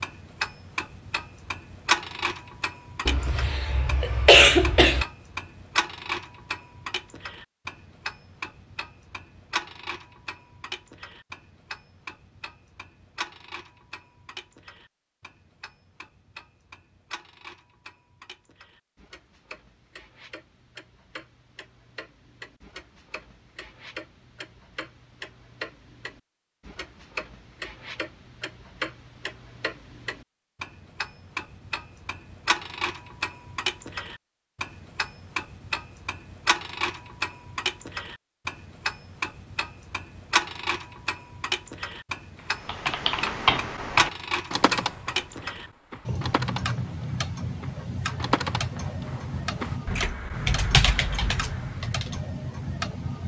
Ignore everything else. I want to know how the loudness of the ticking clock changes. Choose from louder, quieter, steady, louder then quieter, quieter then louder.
quieter then louder.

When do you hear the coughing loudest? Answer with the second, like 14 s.
4 s.